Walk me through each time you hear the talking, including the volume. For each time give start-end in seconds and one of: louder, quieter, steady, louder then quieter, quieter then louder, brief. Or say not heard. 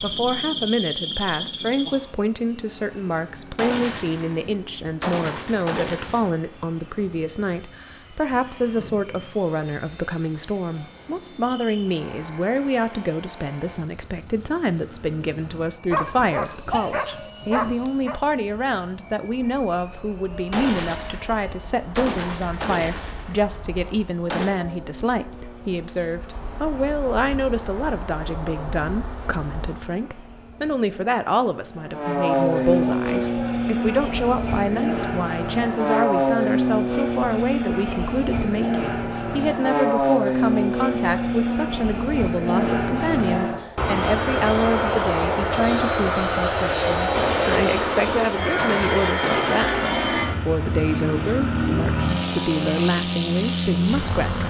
0.0-54.4 steady.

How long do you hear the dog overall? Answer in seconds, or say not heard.
2 s.